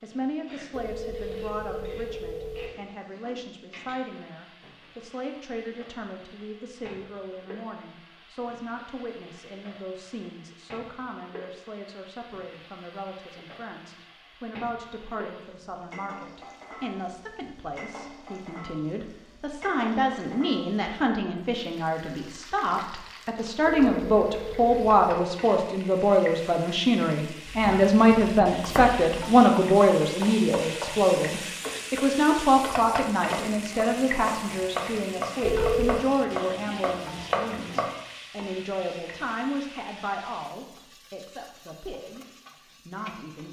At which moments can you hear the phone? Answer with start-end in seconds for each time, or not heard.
0.7-2.7, 23.6-25.1, 35.4-36.0.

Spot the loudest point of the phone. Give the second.
36 s.